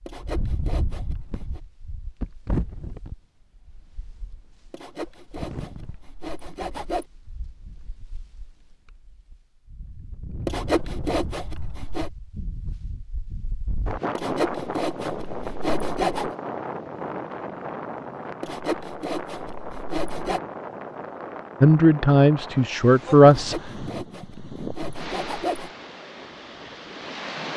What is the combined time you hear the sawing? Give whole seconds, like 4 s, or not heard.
12 s.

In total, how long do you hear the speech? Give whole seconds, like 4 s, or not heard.
2 s.